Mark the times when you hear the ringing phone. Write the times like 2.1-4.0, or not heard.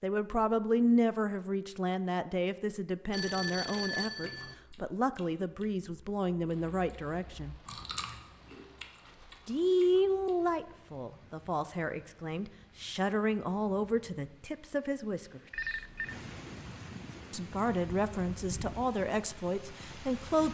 3.1-4.5, 15.5-16.1.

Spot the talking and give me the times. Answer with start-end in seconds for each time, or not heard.
0.0-7.5, 9.4-15.4, 17.3-20.4.